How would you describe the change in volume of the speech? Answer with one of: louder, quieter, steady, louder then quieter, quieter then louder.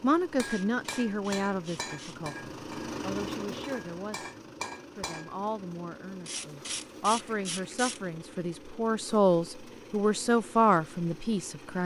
quieter then louder.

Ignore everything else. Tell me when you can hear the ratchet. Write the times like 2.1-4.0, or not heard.
0.5-2.2, 6.2-8.0.